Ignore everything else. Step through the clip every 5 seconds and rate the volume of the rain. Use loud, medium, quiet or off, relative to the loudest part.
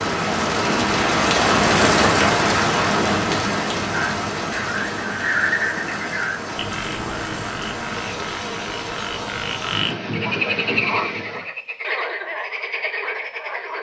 loud, medium, medium.